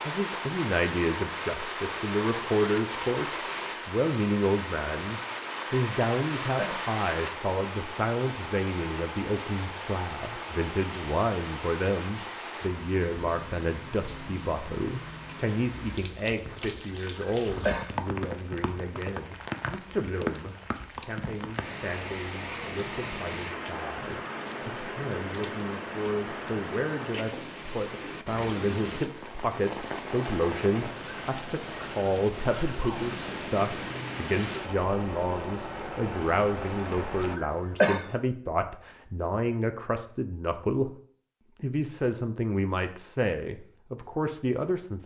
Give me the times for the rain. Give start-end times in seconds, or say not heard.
0.0-37.4.